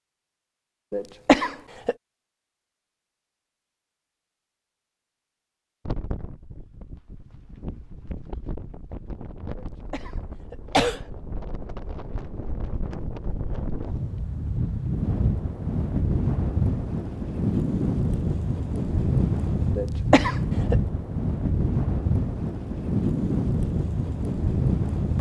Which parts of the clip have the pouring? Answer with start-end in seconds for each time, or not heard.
not heard.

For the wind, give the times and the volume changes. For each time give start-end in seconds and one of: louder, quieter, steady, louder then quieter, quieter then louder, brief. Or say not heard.
5.8-25.1 louder.